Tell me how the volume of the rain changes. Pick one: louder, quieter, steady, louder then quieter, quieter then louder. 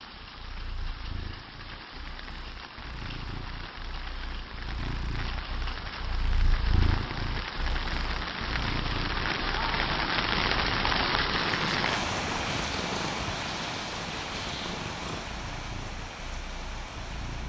louder then quieter.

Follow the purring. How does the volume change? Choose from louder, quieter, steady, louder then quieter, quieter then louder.
louder.